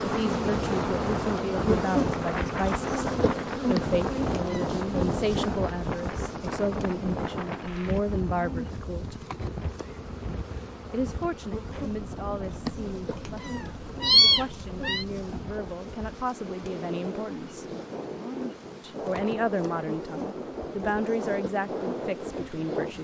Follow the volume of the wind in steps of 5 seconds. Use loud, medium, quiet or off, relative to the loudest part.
loud, loud, medium, medium, loud.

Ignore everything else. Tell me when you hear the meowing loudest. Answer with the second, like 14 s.
14 s.